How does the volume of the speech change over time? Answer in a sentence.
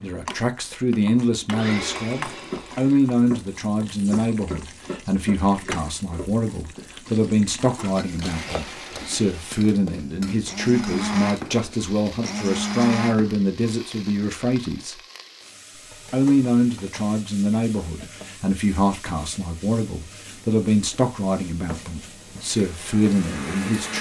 The loudness of the speech stays about the same.